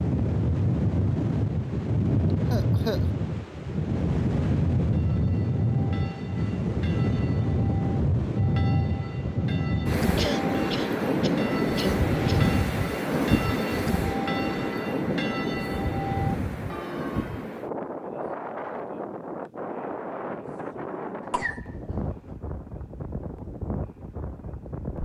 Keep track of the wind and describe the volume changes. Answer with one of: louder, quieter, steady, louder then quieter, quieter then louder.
quieter.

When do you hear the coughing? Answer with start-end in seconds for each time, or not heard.
2.5-3.0, 10.2-12.4, 21.2-21.9.